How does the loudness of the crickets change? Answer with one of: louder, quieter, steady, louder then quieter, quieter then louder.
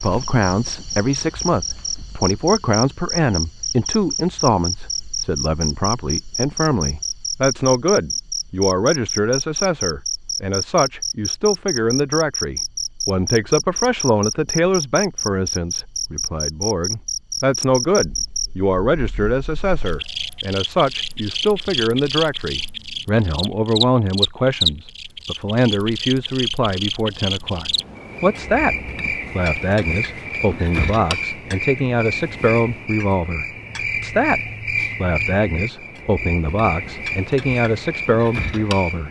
steady.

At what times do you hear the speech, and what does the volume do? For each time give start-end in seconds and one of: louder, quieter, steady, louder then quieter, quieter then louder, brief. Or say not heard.
0.0-39.0 steady.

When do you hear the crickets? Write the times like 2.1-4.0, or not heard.
0.0-39.0.